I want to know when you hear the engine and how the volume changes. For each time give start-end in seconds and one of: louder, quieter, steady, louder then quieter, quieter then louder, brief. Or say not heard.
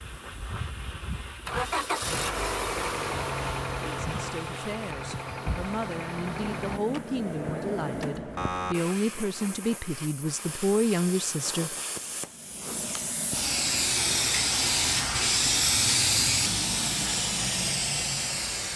0.0-6.8 louder then quieter.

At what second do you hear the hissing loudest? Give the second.
16 s.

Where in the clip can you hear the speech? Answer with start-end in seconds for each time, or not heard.
4.0-11.8.